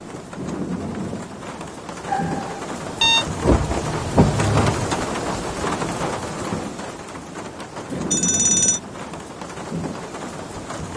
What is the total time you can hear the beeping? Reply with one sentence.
The beeping can be heard for 2 seconds in total.